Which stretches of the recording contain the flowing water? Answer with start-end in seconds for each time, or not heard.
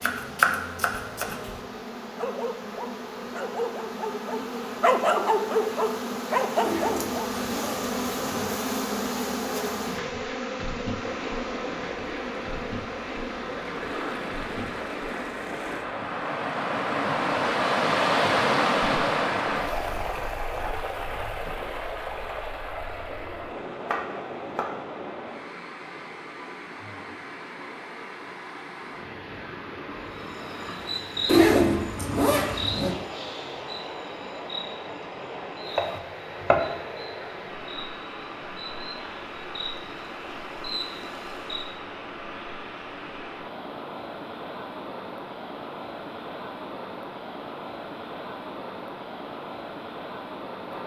10.9-50.8.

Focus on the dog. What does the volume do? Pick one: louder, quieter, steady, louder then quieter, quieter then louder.
louder.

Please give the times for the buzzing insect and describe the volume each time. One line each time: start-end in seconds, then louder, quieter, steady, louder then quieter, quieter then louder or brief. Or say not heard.
0.0-15.2 louder then quieter
30.1-41.7 quieter then louder.